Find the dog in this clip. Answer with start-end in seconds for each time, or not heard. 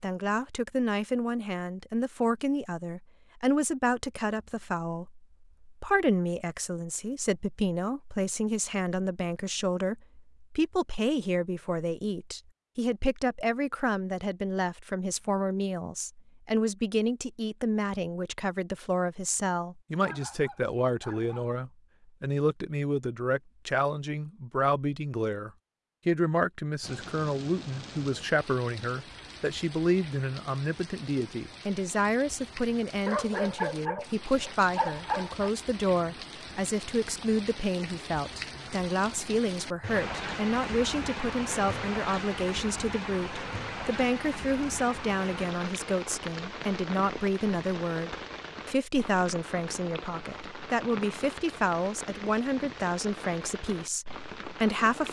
20.0-21.6, 33.0-35.5.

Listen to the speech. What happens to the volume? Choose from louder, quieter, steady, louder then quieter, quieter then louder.
steady.